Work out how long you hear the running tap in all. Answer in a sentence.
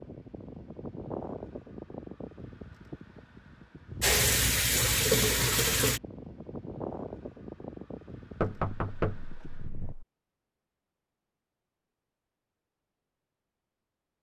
You can hear the running tap for 2 seconds altogether.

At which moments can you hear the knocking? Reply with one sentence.
The knocking can be heard from 8.4 to 10.1 s.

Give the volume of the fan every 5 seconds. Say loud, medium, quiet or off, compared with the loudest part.
loud, loud, off.